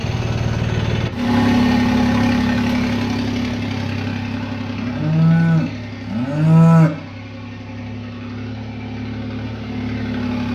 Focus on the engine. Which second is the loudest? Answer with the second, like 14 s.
2 s.